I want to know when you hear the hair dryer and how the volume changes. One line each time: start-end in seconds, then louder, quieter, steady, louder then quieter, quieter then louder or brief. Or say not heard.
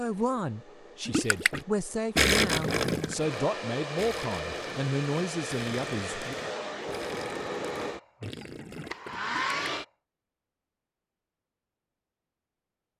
0.0-9.8 louder.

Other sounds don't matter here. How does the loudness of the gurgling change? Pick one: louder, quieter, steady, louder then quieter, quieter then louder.
quieter.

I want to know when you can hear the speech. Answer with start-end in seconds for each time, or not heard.
0.0-6.3.